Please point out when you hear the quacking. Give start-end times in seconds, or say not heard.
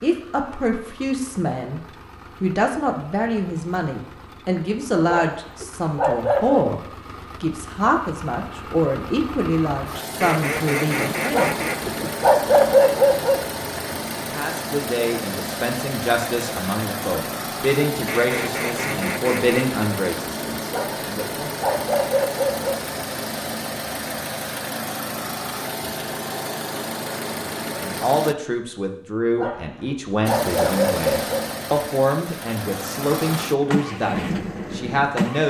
10.2-12.2, 18.1-19.8.